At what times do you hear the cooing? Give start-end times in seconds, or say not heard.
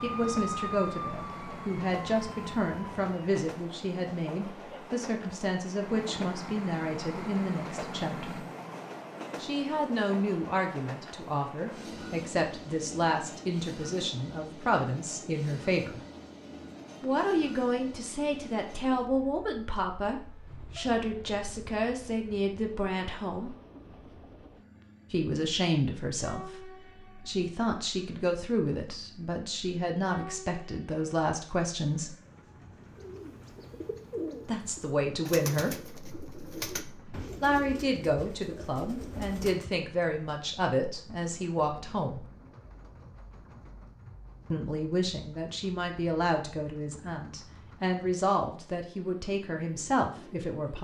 33.0-39.8.